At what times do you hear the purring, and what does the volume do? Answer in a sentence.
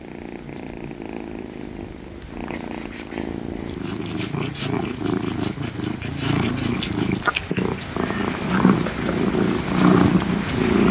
The purring can be heard from 0.0 to 10.8 s, getting louder.